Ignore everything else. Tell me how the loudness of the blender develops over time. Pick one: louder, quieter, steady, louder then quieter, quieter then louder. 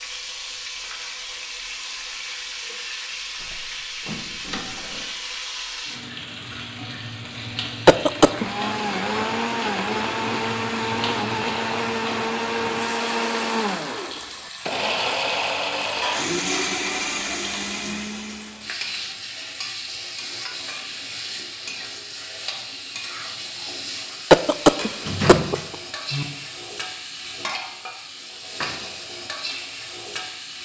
steady.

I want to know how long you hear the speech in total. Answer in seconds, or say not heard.
not heard.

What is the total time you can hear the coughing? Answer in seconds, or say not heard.
2 s.